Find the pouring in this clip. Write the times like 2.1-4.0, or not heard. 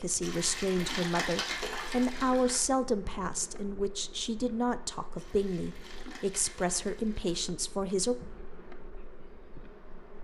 0.2-2.6, 5.2-7.3.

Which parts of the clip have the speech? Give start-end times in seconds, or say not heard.
0.0-8.2.